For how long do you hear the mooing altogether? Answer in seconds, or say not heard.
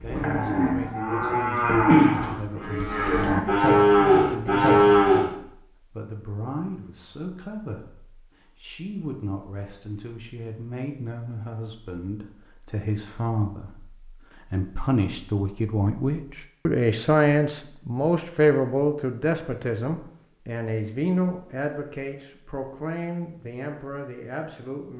5 s.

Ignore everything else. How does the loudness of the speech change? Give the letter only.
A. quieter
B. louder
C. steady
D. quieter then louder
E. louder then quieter
E.